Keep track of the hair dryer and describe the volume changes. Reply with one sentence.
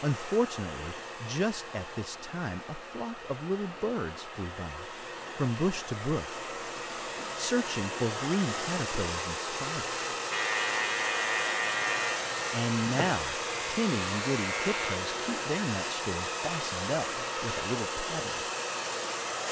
The volume of the hair dryer goes up.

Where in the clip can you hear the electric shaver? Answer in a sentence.
You can hear the electric shaver from 10.3 to 15.0 s.